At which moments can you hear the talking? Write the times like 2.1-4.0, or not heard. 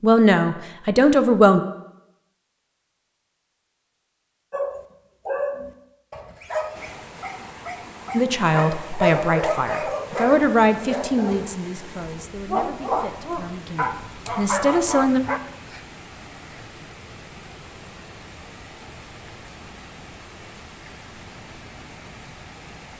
0.0-1.6, 8.1-15.2.